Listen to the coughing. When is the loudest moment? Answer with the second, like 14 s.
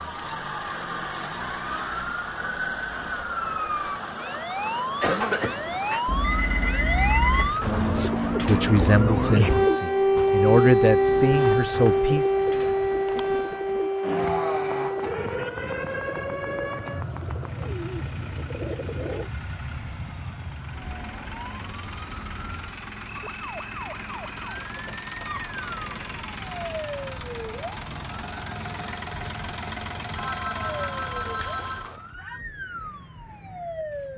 5 s.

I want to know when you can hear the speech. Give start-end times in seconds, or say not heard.
7.8-12.2.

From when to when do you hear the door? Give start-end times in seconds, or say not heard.
not heard.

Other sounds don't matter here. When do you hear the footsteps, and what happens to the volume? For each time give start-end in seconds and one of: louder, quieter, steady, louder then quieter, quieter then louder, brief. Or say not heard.
not heard.